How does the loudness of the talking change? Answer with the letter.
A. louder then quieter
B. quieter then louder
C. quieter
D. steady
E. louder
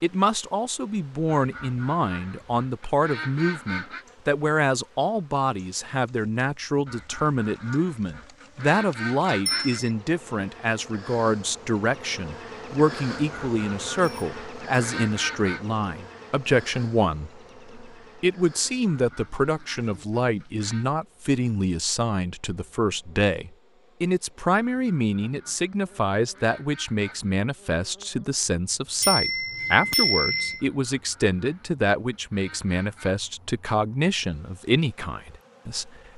D.